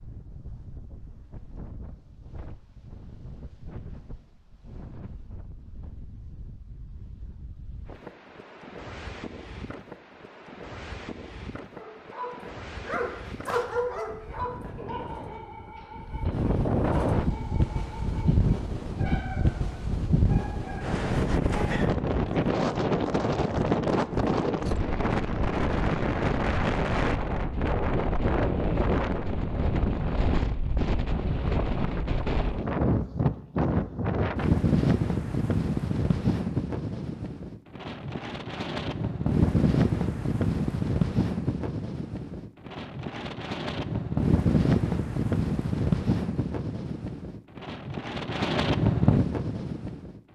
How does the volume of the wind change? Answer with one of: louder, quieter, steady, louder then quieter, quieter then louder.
louder.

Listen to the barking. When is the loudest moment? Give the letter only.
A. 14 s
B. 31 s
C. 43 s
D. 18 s
A.